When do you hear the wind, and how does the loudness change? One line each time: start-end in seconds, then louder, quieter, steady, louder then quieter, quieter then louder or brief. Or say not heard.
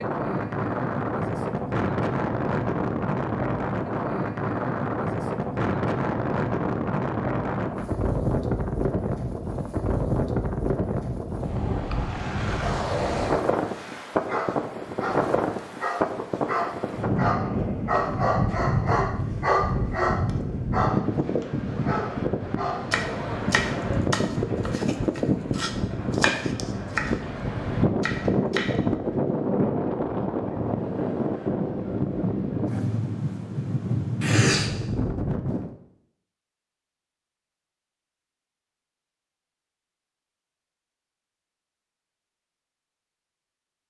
0.0-35.8 steady.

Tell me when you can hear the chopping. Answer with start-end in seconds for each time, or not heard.
22.9-27.4, 28.0-28.8.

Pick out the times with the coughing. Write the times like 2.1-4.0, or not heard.
34.2-34.8.